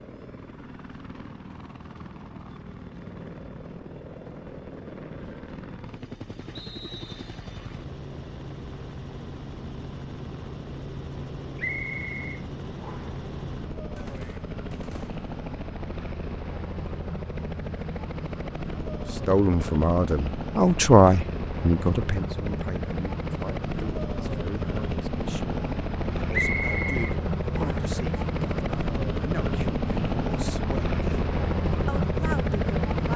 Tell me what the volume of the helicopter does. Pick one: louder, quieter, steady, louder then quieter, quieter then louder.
louder.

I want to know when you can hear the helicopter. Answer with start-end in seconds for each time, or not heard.
0.0-33.1.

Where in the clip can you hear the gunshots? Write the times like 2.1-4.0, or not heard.
13.9-15.2.